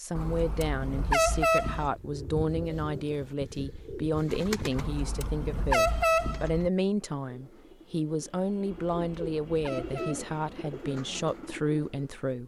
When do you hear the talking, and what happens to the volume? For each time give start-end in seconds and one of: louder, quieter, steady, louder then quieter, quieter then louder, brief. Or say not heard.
0.0-12.4 steady.